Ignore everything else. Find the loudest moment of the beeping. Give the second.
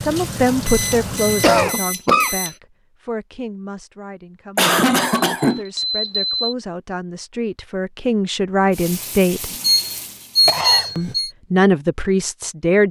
11 s.